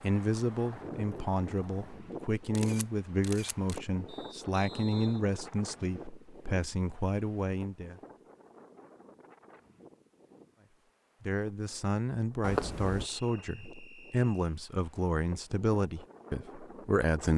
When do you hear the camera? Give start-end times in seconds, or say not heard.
2.5-3.8, 12.4-13.1.